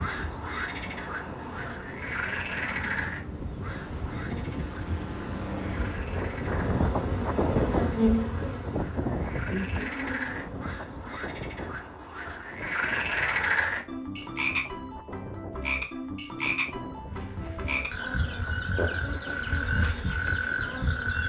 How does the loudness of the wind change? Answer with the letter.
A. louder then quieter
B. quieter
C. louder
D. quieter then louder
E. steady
A.